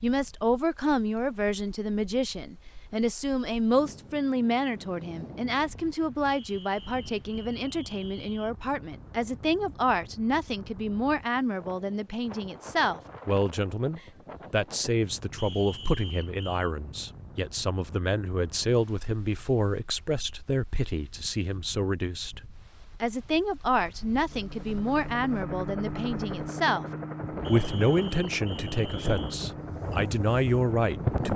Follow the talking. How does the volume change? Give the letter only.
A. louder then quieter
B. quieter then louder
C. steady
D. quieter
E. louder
C.